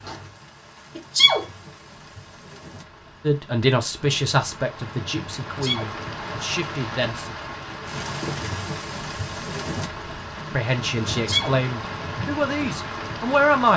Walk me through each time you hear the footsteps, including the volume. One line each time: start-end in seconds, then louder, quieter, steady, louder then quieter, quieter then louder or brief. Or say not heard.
not heard.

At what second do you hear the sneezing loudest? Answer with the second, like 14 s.
1 s.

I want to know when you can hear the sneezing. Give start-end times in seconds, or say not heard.
0.9-1.4, 5.4-5.9, 11.1-11.6.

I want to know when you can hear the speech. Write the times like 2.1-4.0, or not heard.
3.2-7.3, 10.5-13.7.